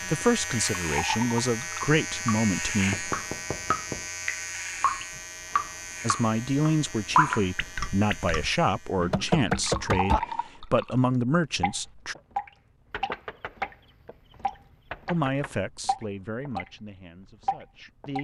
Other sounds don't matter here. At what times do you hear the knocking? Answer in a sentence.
The knocking can be heard from 2.9 to 4.0 s, from 8.9 to 10.2 s, from 12.9 to 13.8 s and from 14.9 to 15.6 s.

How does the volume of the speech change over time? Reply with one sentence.
The volume of the speech goes down.